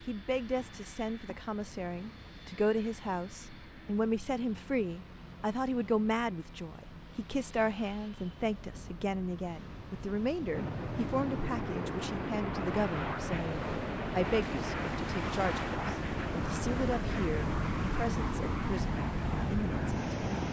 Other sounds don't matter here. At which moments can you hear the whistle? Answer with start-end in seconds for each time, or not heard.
not heard.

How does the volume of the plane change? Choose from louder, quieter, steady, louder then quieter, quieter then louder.
louder.